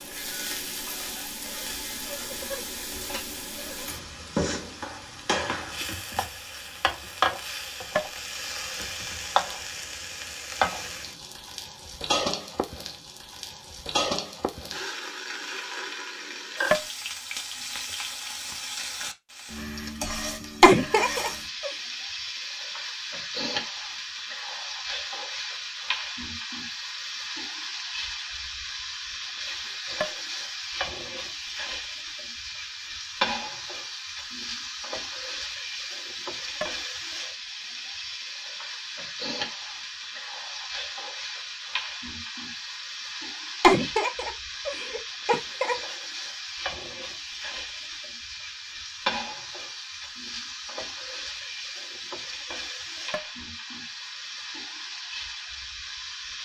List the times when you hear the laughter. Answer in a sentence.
You can hear the laughter from 20.6 to 21.7 s and from 43.6 to 45.8 s.